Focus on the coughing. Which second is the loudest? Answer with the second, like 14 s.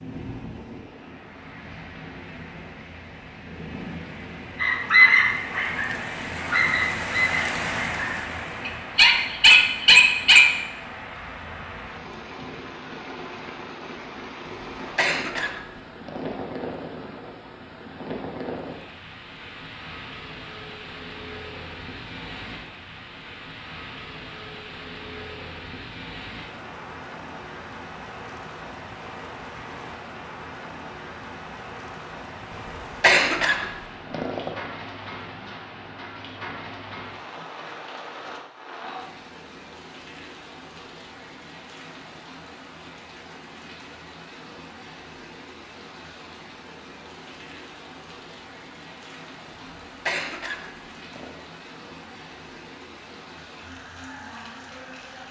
33 s.